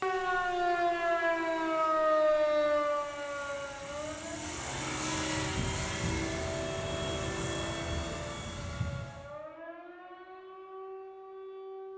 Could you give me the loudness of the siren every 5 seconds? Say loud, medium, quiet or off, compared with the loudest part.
loud, quiet, quiet.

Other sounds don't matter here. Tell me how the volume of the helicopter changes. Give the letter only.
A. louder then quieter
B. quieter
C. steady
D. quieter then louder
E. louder
E.